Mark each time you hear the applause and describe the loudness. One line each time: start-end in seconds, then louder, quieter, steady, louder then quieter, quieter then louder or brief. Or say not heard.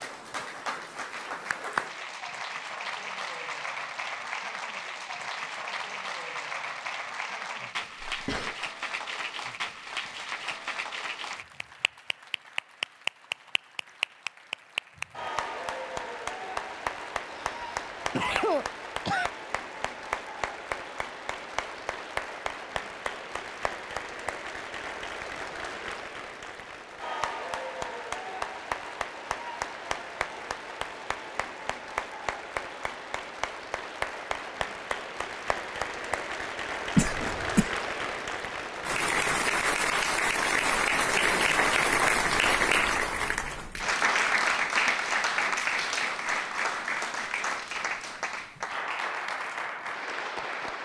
0.0-50.8 louder.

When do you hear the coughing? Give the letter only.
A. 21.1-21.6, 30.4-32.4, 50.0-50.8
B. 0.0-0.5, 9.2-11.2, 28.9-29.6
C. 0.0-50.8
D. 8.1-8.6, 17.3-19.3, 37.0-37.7
D.